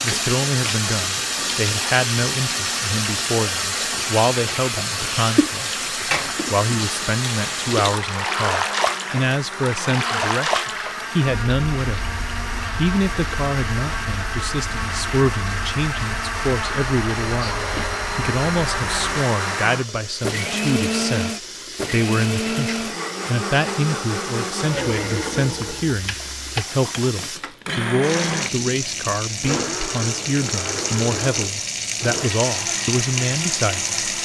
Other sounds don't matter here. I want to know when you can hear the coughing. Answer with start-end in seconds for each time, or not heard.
17.4-18.0.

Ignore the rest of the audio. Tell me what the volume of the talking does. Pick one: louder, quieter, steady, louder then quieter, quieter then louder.
steady.